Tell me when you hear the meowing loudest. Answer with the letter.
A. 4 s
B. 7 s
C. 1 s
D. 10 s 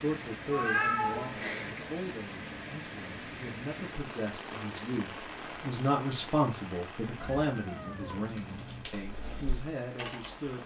C.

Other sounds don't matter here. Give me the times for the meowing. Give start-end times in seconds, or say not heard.
0.5-1.8, 7.2-8.9.